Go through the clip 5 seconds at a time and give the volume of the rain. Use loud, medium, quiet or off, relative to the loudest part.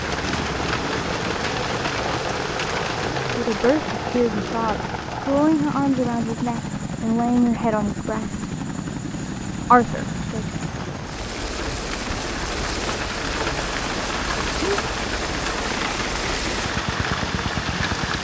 loud, quiet, loud, loud.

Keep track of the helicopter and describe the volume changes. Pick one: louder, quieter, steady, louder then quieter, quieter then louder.
steady.